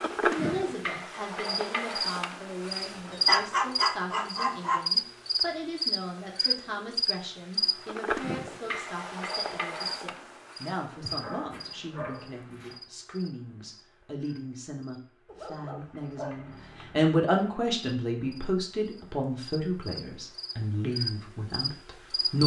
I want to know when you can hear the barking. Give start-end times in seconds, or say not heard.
2.7-4.8, 11.0-12.8, 15.2-17.1.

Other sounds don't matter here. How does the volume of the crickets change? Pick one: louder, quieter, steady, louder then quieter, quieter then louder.
quieter then louder.